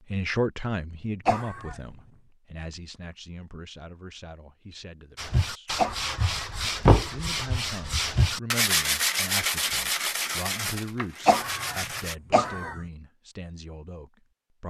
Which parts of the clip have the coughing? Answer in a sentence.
You can hear the coughing from 1.2 to 1.8 s, from 5.8 to 6.3 s and from 11.2 to 12.8 s.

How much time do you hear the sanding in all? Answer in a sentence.
You can hear the sanding for 7 seconds altogether.